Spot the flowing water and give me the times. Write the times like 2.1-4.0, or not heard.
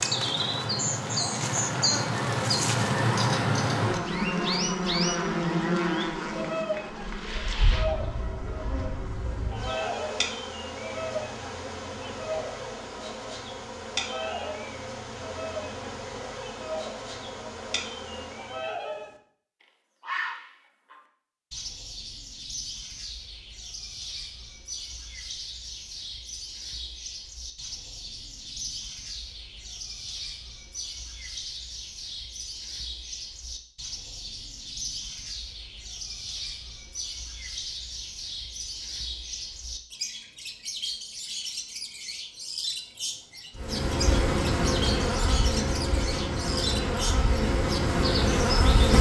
not heard.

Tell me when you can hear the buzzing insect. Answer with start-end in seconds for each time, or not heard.
0.0-18.8, 43.5-48.9.